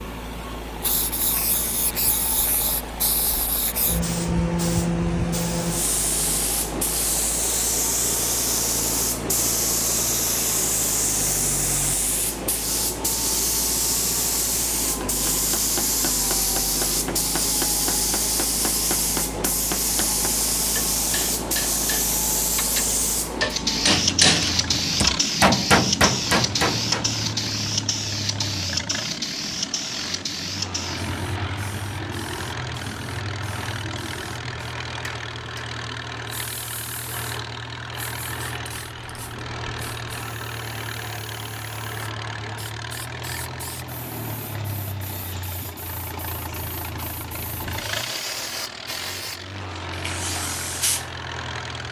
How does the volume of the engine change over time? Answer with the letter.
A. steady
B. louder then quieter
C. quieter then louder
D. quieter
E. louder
A.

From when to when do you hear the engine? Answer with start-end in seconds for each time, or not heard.
0.0-51.8.